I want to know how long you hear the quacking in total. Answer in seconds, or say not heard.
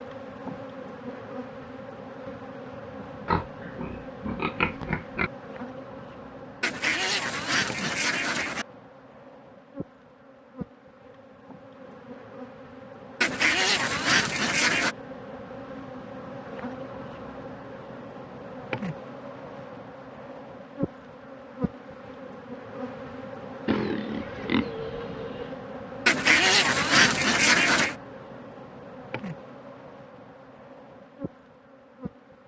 6 s.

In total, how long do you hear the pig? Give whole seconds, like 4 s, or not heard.
4 s.